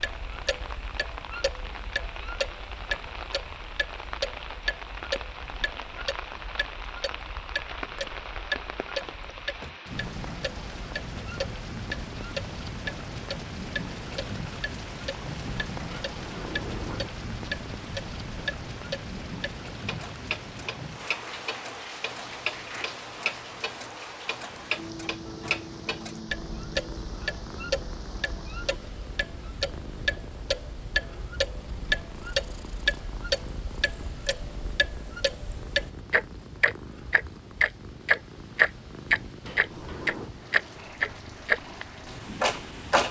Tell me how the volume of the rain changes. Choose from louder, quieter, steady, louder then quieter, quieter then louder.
quieter.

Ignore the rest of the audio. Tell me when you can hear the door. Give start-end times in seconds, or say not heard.
9.0-9.8, 15.9-17.1, 39.4-40.3.